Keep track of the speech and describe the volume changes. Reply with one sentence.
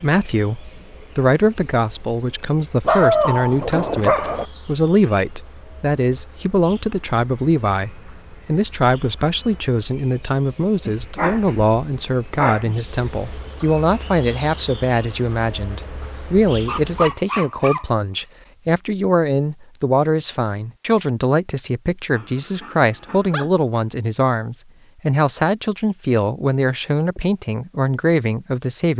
The volume of the speech stays about the same.